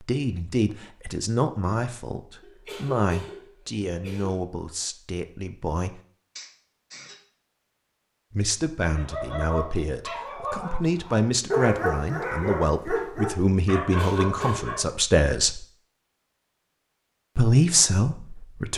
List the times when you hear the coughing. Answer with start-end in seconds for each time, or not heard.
2.4-4.4, 6.3-7.2, 13.8-14.8.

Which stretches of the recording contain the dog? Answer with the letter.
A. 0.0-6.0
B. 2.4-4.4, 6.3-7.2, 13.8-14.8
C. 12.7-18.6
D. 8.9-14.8
D.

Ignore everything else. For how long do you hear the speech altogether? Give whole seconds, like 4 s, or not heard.
15 s.